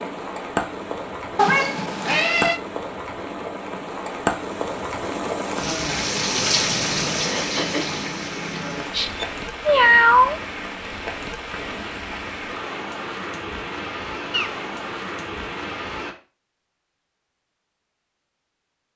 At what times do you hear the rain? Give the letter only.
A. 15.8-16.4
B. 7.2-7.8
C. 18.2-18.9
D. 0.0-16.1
D.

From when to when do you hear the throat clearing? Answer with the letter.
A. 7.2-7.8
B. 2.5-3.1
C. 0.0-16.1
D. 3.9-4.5
A.